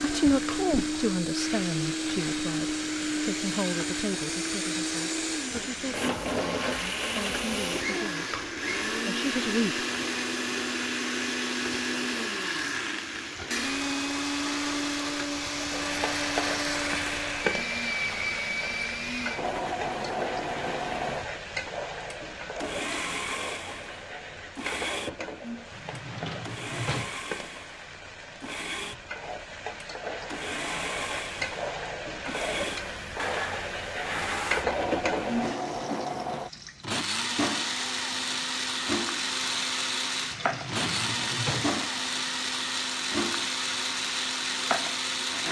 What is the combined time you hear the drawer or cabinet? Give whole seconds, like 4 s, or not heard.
4 s.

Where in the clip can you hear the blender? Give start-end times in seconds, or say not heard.
0.0-45.4.